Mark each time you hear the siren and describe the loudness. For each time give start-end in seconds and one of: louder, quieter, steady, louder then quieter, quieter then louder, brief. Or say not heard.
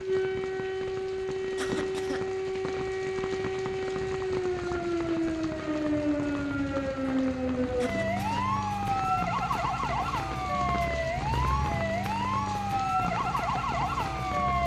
0.0-14.6 steady.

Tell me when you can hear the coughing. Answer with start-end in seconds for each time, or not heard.
1.6-2.2, 7.8-8.4.